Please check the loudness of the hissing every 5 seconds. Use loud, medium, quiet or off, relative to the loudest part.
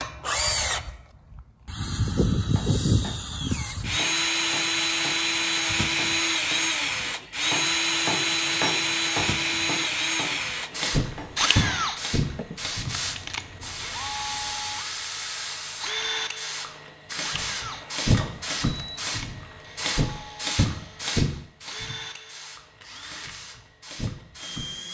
off, off, loud, loud, loud.